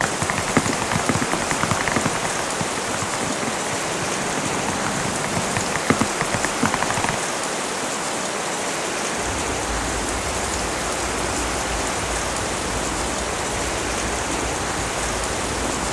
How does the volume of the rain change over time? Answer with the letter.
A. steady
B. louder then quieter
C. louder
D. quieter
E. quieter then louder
A.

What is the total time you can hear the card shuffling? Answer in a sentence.
The card shuffling can be heard for 2 seconds in total.